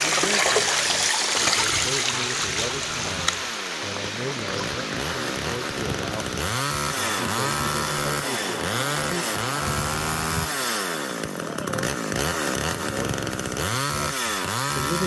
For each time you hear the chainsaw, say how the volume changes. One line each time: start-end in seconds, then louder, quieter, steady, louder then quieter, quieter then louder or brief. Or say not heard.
0.0-15.0 louder.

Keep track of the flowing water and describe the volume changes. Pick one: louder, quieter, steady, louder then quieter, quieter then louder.
quieter.